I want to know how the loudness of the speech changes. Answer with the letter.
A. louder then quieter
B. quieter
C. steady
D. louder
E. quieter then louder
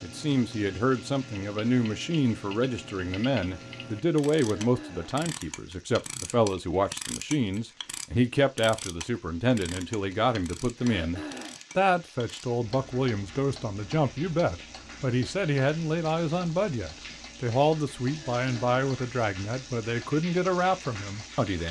C.